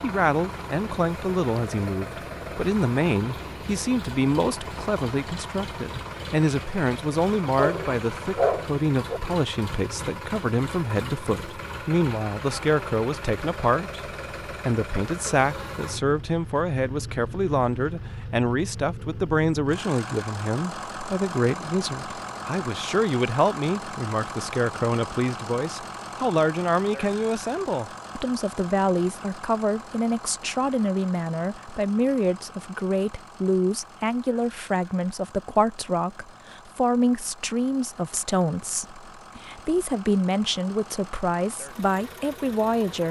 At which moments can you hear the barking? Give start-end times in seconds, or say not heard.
7.5-9.2.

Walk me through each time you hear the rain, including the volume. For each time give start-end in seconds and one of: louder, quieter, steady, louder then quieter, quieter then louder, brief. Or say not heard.
not heard.